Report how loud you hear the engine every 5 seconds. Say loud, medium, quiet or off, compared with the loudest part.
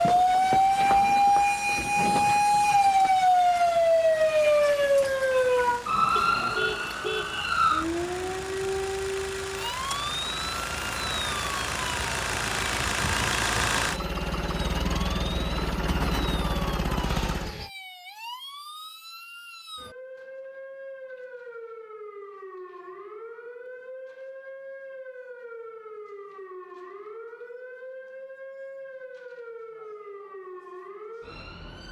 quiet, medium, loud, loud, off, off, off.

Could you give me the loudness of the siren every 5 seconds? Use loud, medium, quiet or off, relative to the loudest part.
loud, medium, quiet, quiet, quiet, quiet, quiet.